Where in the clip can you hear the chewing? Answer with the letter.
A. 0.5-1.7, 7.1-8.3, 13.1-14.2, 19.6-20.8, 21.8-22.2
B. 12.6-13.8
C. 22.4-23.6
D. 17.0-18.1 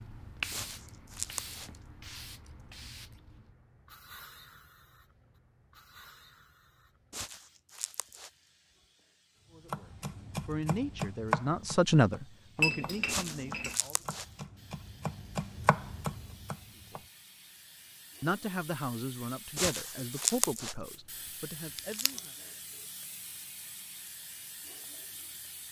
A.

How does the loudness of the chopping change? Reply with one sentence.
The volume of the chopping goes down, then up.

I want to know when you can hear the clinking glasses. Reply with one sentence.
The clinking glasses can be heard from 12.6 to 13.8 s.